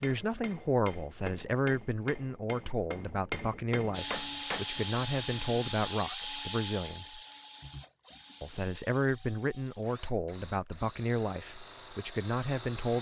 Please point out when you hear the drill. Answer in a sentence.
You can hear the drill from 3.9 to 12.9 s.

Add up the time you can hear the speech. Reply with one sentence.
The speech can be heard for 12 seconds in total.